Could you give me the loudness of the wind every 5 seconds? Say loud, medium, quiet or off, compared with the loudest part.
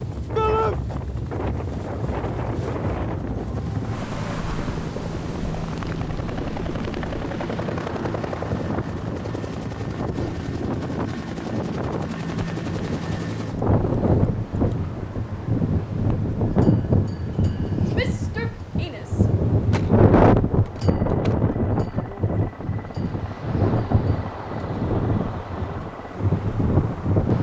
medium, quiet, loud, loud, loud, loud.